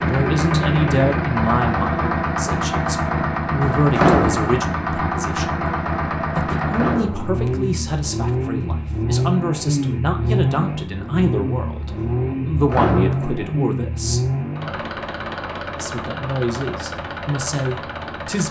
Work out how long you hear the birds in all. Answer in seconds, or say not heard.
not heard.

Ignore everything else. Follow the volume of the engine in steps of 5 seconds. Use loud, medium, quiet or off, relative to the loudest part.
loud, loud, loud, medium.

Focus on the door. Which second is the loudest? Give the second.
4 s.